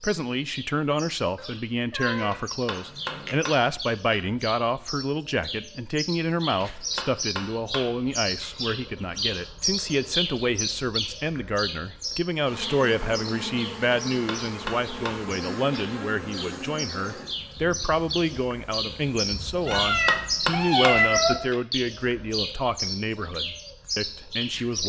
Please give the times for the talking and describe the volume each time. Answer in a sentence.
You can hear the talking from 0.0 to 24.8 s, at a steady volume.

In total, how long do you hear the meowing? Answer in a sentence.
You can hear the meowing for 4 seconds altogether.